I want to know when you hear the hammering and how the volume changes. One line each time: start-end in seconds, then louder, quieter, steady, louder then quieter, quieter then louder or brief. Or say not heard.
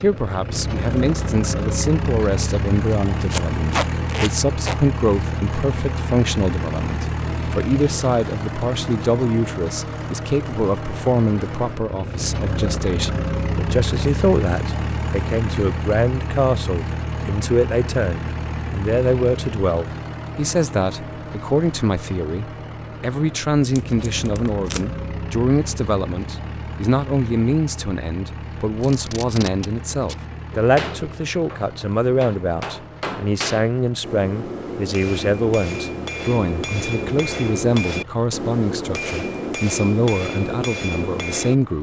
30.6-41.6 louder.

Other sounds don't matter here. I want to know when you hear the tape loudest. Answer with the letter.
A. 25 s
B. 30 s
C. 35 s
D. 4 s
D.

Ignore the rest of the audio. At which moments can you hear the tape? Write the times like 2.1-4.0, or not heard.
3.3-4.8, 23.8-25.0, 28.8-30.2.